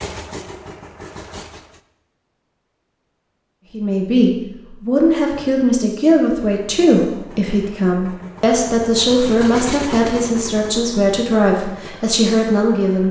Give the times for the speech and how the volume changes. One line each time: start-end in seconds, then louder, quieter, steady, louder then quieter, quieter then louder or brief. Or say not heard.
3.7-13.0 steady.